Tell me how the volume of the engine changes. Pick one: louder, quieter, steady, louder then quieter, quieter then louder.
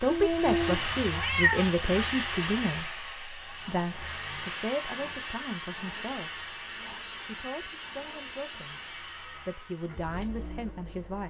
quieter.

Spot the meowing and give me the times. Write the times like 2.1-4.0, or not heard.
0.1-1.7.